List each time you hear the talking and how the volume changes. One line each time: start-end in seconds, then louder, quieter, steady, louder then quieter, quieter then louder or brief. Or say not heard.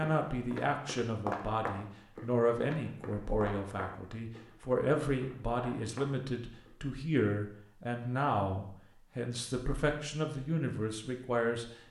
0.0-11.7 steady.